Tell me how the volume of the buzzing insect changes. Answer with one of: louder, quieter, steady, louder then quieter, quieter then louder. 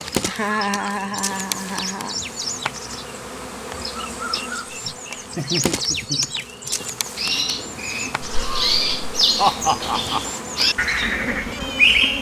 steady.